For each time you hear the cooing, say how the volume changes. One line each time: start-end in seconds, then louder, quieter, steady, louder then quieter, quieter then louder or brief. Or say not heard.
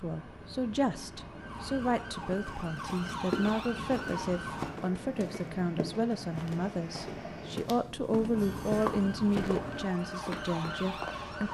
not heard.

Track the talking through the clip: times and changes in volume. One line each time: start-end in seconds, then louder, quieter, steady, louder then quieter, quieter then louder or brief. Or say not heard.
0.0-11.4 steady.